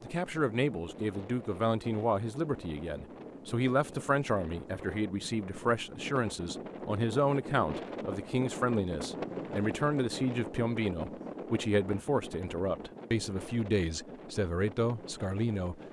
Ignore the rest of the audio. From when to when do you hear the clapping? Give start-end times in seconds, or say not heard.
not heard.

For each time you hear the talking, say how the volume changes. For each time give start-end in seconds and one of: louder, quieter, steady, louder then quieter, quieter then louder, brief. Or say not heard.
0.0-15.8 steady.